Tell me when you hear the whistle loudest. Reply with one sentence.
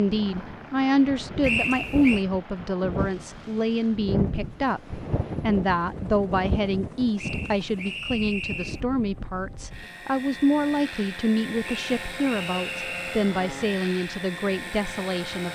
The loudest moment of the whistle is at 2 seconds.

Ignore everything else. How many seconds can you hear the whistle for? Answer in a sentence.
You can hear the whistle for 4 seconds altogether.